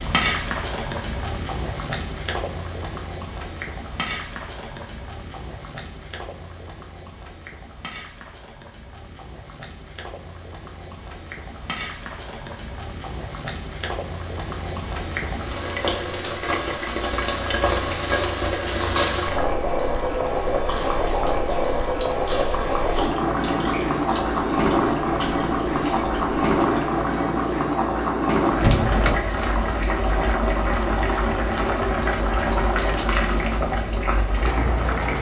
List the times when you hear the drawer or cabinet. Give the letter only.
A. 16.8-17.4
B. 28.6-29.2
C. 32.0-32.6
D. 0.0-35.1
B.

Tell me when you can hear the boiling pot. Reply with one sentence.
The boiling pot can be heard from 0.0 to 35.1 s.